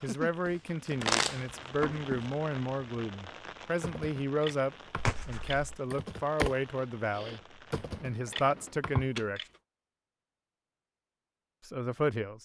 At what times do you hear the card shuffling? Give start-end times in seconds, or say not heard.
0.5-2.2, 5.0-5.7, 8.6-9.6.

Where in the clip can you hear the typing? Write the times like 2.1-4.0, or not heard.
3.8-6.5, 7.2-9.4.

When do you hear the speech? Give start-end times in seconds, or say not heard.
0.0-7.4, 8.0-9.4, 11.7-12.4.